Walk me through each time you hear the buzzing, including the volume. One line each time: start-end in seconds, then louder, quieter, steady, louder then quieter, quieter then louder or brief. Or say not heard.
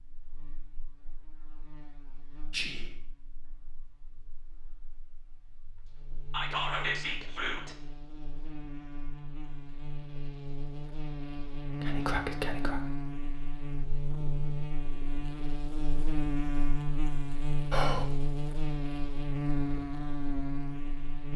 0.0-21.3 louder.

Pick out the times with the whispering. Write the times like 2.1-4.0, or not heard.
2.5-3.0, 6.3-7.8, 11.8-12.9, 17.7-18.1.